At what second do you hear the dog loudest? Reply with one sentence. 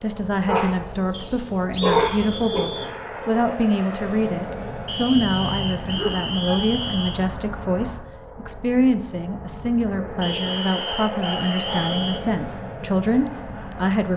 The loudest moment of the dog is at 2 seconds.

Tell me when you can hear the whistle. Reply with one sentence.
You can hear the whistle from 1.1 to 3.0 s, from 4.8 to 7.2 s and from 10.2 to 12.2 s.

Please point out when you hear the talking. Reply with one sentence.
You can hear the talking from 0.0 to 14.1 s.